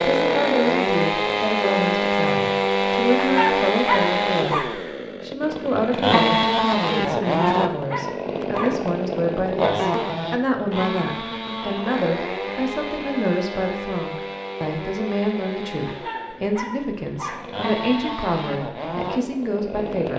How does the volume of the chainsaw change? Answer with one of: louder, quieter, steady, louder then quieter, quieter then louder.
quieter.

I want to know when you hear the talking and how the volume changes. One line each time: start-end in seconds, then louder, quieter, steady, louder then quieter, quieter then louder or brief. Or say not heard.
0.0-20.1 steady.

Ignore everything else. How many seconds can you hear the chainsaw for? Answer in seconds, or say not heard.
20 s.